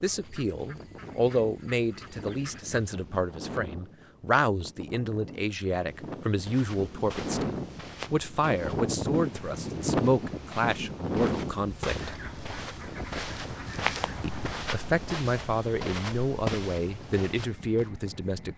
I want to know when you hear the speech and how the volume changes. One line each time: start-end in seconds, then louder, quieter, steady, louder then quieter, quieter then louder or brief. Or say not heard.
0.0-12.2 steady
14.2-18.5 steady.